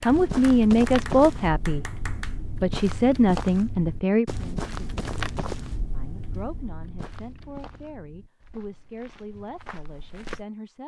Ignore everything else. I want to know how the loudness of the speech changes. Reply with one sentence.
The volume of the speech goes down.